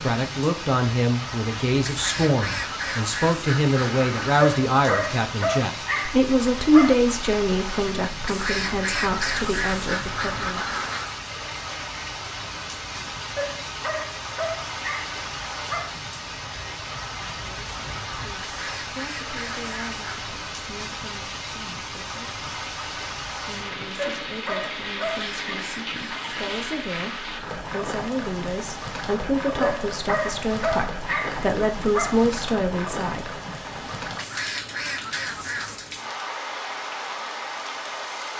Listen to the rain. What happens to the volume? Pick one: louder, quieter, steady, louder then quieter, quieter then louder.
steady.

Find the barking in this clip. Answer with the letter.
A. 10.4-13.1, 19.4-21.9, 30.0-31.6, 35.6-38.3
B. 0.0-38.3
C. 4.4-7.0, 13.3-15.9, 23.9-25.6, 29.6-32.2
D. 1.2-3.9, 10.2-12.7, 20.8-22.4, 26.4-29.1
C.